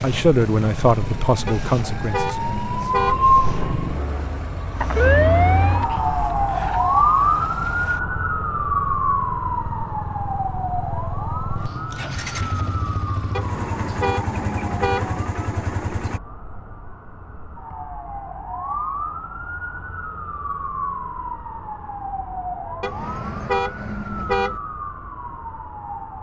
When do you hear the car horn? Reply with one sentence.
You can hear the car horn from 1.4 to 3.2 s, from 13.3 to 15.1 s and from 22.8 to 24.6 s.